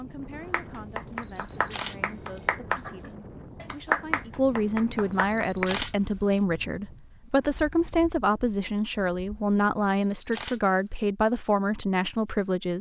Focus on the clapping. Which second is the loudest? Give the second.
4 s.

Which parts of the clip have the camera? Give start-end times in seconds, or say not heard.
1.1-2.4, 5.1-6.3, 9.8-11.0.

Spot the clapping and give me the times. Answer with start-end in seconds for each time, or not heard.
0.5-5.7.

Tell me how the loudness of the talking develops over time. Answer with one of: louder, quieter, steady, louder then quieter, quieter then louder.
louder.